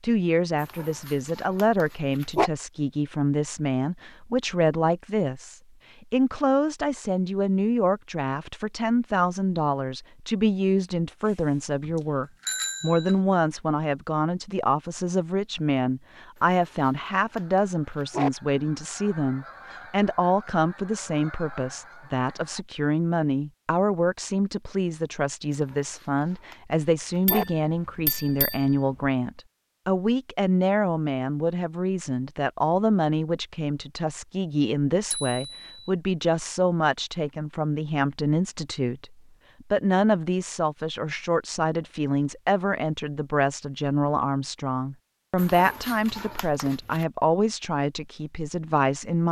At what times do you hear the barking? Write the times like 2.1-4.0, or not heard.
0.6-2.5, 16.4-18.3, 25.5-27.4, 45.4-47.0.